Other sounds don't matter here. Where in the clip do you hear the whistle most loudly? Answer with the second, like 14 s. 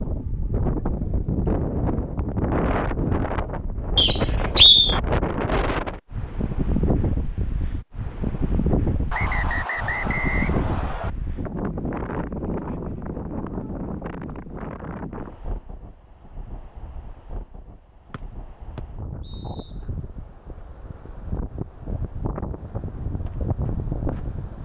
5 s.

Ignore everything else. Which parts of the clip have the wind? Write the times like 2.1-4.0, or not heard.
0.0-24.6.